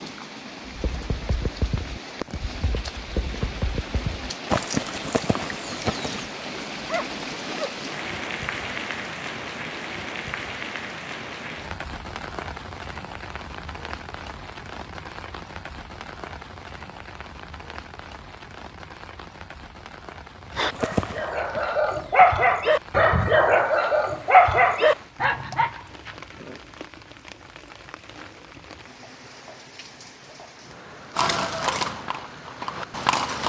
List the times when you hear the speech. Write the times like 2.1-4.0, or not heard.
not heard.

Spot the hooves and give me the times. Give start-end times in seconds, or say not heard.
0.7-6.3, 20.5-22.3, 31.1-33.4.